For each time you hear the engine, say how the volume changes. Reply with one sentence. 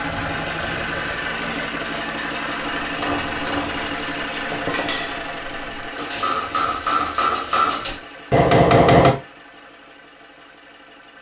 You can hear the engine from 0.0 to 11.1 s, getting quieter.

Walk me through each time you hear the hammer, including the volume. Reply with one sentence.
The hammer can be heard from 2.8 to 9.2 s, getting louder.